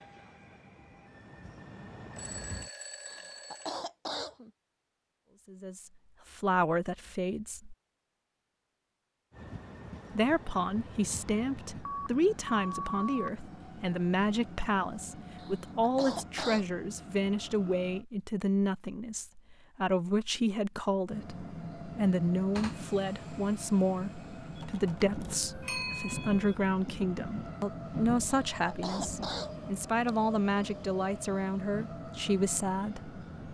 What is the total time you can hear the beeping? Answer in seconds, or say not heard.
5 s.